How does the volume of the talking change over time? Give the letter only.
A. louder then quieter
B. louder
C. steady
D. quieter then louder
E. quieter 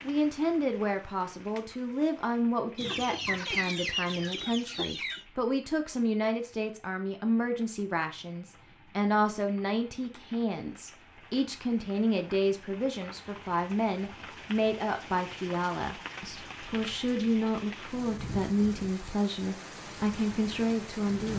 C.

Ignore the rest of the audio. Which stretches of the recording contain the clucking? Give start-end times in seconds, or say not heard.
2.8-5.2.